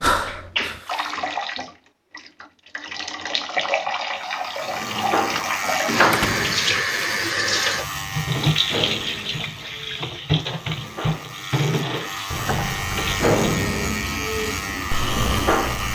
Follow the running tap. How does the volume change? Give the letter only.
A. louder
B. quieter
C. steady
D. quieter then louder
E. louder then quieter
E.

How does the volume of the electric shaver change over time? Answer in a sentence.
The volume of the electric shaver goes down, then up.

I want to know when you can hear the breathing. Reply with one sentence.
The breathing can be heard from 0.0 to 1.1 s and from 14.9 to 15.9 s.